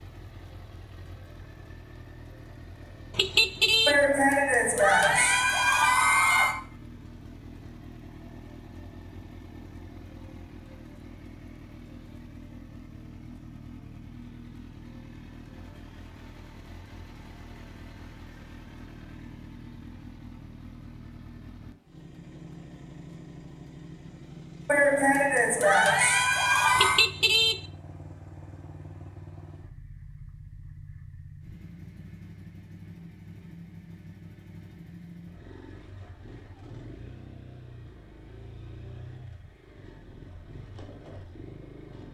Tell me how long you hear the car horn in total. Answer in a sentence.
The car horn can be heard for 2 seconds in total.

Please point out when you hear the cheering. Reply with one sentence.
You can hear the cheering from 3.9 to 6.5 s and from 24.6 to 27.1 s.